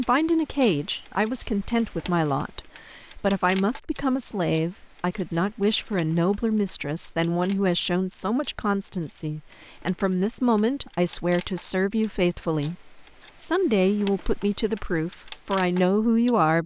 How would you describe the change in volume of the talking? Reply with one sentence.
The loudness of the talking stays about the same.